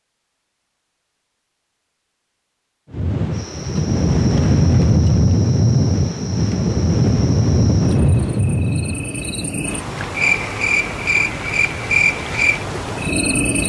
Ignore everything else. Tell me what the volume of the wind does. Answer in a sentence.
The volume of the wind goes down.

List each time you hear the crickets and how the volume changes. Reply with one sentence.
You can hear the crickets from 3.3 to 13.6 s, getting louder.